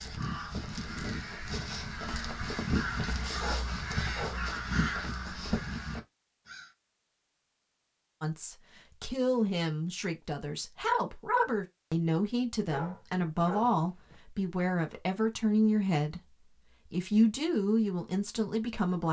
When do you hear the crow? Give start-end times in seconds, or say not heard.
0.0-6.7.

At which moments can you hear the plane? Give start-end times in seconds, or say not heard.
not heard.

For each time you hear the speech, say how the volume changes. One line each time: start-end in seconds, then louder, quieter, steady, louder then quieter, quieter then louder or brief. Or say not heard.
8.2-19.0 steady.